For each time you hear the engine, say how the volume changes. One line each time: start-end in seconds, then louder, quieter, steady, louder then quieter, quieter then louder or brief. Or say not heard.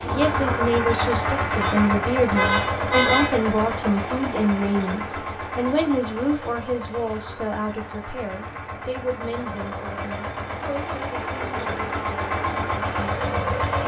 0.0-13.8 quieter then louder.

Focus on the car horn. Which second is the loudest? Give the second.
3 s.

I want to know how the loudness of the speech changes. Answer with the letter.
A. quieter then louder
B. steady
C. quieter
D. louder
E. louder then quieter
C.